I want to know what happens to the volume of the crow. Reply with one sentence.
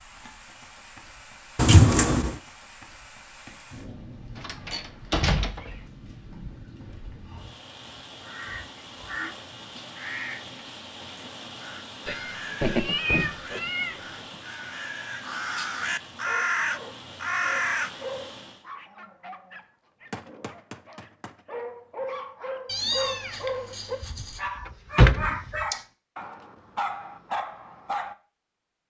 The volume of the crow goes up.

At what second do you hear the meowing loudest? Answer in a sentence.
The volume of the meowing peaks at 2 seconds.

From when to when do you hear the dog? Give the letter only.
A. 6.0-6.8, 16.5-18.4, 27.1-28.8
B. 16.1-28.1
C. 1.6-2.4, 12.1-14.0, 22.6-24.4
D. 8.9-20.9
B.